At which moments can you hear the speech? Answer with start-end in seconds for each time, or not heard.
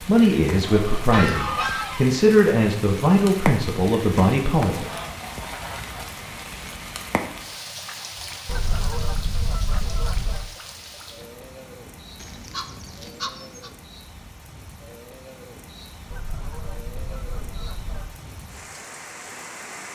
0.0-4.8.